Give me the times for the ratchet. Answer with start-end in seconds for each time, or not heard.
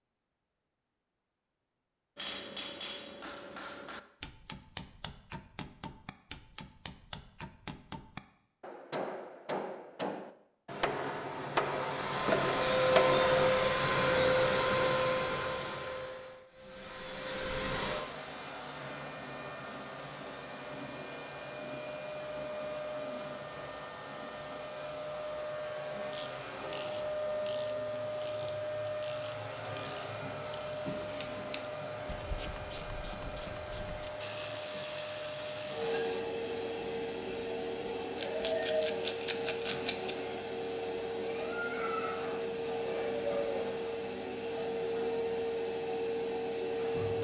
26.1-36.2.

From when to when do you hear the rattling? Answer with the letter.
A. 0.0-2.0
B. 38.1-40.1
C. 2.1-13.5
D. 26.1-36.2
B.